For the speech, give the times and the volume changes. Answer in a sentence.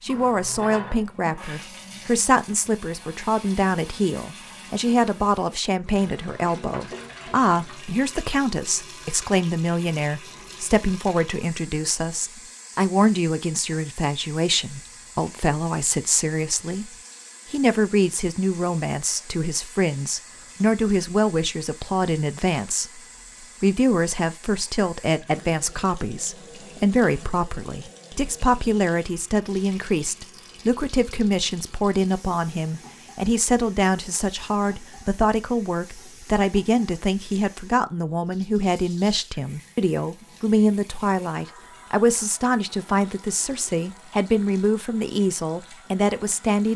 You can hear the speech from 0.0 to 46.7 s, at a steady volume.